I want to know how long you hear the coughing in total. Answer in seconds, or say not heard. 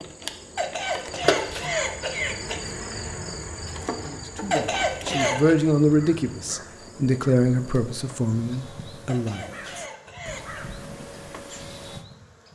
5 s.